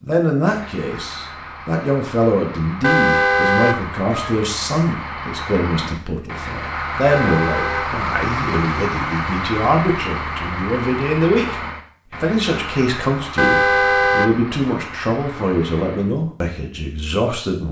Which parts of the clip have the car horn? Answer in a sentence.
You can hear the car horn from 2.8 to 4.3 s, from 7.1 to 7.9 s and from 13.3 to 14.5 s.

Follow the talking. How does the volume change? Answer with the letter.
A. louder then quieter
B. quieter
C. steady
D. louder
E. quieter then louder
C.